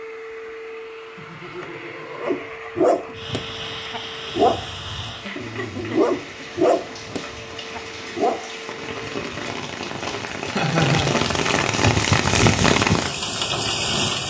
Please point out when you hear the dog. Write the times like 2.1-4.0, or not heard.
2.1-8.6.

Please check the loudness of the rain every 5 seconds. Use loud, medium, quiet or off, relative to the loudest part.
quiet, quiet, loud.